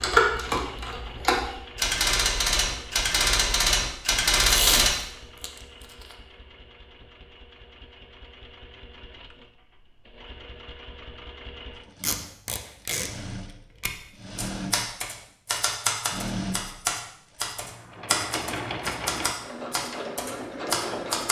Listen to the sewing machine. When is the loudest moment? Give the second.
19 s.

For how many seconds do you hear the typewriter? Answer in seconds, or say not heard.
12 s.